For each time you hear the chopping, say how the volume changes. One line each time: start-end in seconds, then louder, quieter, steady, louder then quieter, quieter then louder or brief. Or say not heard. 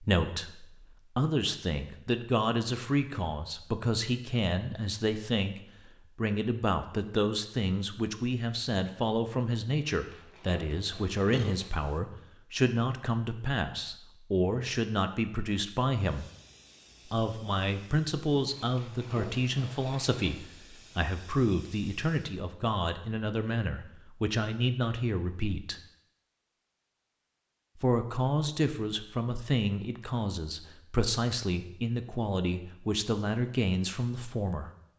not heard.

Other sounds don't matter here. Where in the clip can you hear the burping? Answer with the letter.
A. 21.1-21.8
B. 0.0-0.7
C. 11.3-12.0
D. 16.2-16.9
C.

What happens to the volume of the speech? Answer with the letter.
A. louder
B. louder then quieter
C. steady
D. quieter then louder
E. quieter
C.